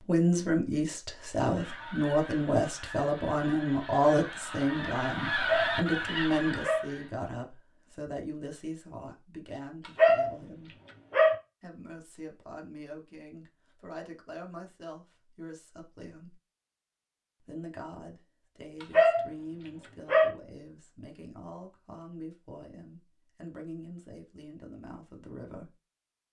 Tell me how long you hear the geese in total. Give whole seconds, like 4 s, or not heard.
6 s.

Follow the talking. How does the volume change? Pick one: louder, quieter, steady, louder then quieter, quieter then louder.
quieter.